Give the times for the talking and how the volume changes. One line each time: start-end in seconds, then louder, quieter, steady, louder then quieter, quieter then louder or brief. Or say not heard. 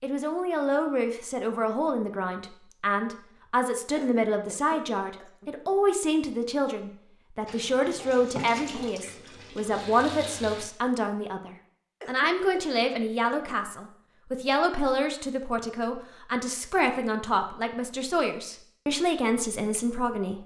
0.0-20.4 steady.